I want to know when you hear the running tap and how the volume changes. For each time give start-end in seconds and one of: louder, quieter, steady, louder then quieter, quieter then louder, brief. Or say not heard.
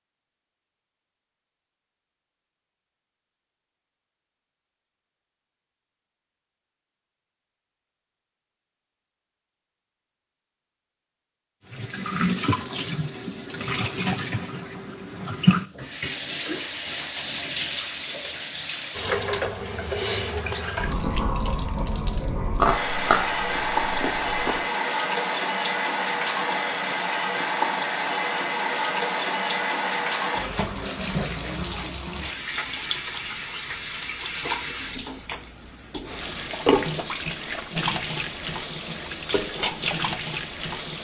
11.7-40.9 steady.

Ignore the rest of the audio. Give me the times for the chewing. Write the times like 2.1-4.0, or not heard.
22.6-24.6.